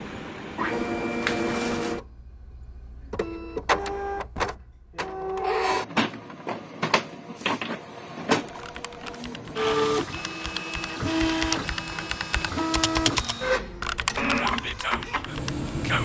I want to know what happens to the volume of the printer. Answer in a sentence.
The loudness of the printer stays about the same.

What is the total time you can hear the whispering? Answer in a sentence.
You can hear the whispering for 2 seconds altogether.